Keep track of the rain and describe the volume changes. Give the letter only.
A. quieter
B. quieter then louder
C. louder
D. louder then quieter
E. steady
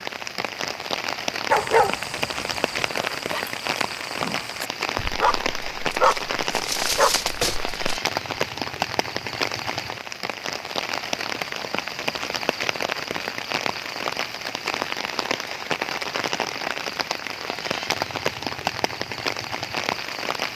E.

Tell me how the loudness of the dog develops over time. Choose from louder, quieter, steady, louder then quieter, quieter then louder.
louder.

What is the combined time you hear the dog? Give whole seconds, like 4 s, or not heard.
6 s.